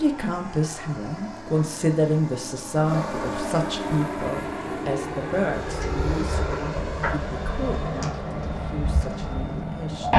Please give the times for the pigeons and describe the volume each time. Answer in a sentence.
The pigeons can be heard from 5.6 to 10.1 s, getting quieter.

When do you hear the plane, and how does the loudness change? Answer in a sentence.
You can hear the plane from 0.0 to 10.1 s, getting louder.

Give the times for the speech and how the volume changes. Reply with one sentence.
You can hear the speech from 0.0 to 10.1 s, getting quieter.